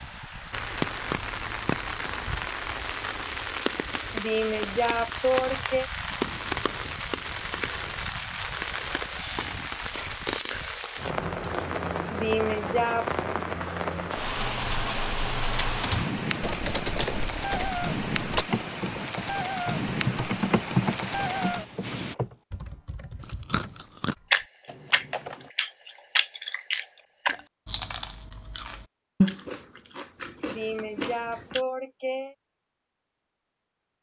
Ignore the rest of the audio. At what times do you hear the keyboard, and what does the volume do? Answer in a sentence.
The keyboard can be heard from 14.2 to 25.5 s, getting louder then quieter.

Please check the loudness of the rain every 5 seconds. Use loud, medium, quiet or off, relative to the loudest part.
loud, loud, loud, loud, loud, off, off.